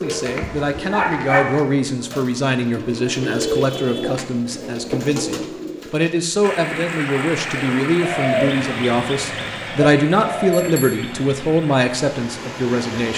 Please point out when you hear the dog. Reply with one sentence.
You can hear the dog from 0.2 to 1.6 s.